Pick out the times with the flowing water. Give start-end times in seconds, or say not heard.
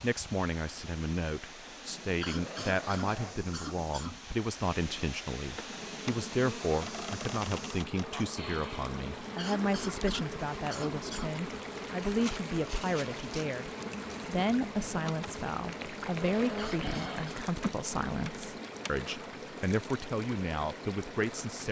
0.0-21.6.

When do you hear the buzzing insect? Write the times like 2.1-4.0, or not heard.
5.5-19.2.